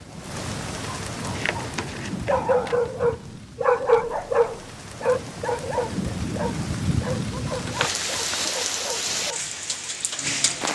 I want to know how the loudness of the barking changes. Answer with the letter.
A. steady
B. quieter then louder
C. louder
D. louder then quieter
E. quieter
E.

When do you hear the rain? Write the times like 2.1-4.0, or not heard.
0.0-10.6.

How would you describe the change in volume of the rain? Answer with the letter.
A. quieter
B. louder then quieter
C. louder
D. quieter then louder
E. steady
D.